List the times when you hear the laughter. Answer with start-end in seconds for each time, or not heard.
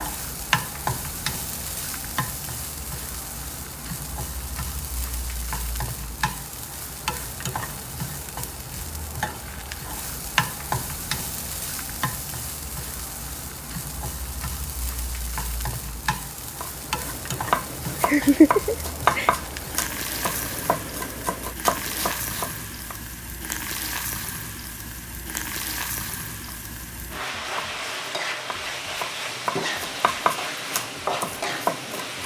18.0-19.3.